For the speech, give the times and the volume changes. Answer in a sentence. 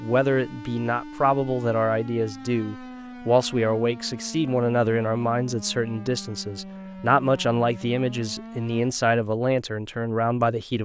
You can hear the speech from 0.0 to 10.8 s, at a steady volume.